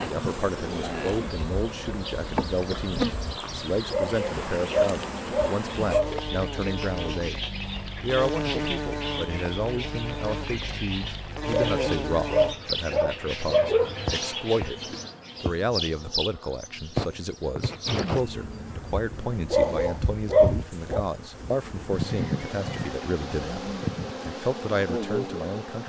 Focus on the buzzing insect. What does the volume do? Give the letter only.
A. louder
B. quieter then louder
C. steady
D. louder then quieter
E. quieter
C.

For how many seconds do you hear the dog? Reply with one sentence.
The dog can be heard for 6 seconds in total.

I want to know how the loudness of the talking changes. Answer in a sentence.
The loudness of the talking stays about the same.